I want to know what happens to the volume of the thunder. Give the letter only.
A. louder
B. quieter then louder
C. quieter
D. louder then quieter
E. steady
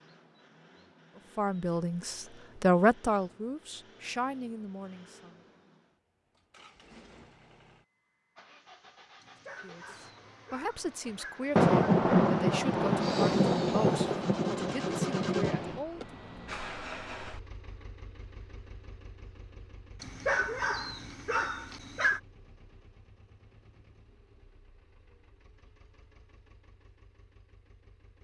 C.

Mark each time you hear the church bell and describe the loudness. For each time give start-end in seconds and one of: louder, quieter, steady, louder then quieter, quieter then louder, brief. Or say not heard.
not heard.